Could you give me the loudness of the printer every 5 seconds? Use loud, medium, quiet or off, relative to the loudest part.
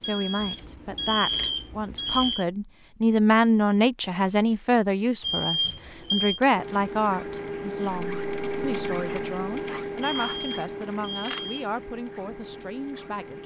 off, loud, medium.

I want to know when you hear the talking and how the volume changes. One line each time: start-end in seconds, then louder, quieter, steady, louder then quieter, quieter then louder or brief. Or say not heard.
0.0-13.4 louder then quieter.